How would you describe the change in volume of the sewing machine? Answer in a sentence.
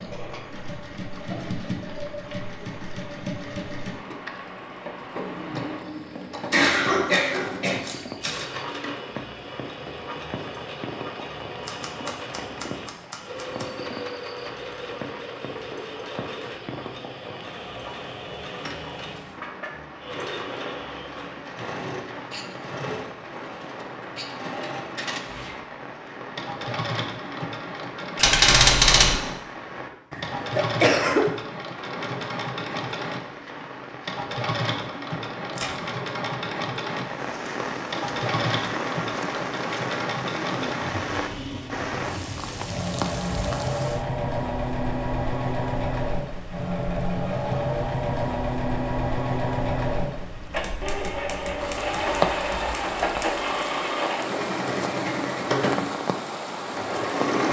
The volume of the sewing machine goes up.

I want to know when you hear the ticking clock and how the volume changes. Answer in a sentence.
The ticking clock can't be heard in this clip.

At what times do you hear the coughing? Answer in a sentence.
The coughing can be heard from 6.5 to 7.8 s and from 30.1 to 31.2 s.